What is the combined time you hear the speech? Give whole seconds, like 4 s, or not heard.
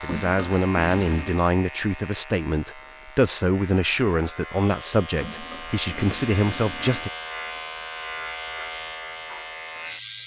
7 s.